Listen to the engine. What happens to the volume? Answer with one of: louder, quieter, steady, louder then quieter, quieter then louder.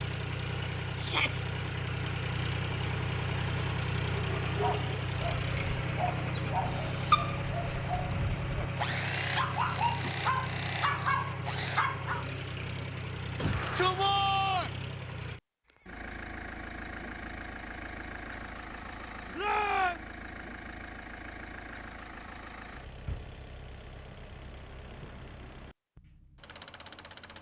quieter.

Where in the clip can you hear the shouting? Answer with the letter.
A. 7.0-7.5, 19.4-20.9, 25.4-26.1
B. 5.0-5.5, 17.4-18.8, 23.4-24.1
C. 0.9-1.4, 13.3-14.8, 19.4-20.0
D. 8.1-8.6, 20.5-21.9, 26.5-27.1
C.